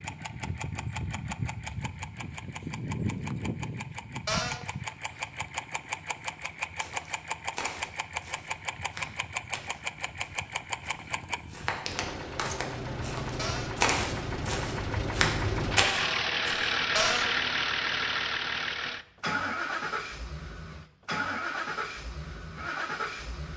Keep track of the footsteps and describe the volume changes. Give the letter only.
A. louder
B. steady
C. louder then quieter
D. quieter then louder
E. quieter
D.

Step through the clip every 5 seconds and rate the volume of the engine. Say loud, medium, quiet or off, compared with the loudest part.
medium, medium, medium, loud, medium.